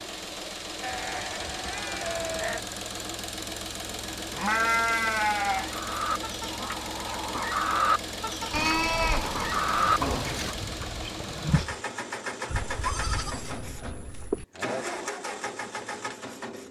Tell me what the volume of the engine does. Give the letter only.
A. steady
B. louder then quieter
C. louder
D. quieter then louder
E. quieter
A.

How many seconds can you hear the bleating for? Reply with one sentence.
The bleating can be heard for 7 seconds in total.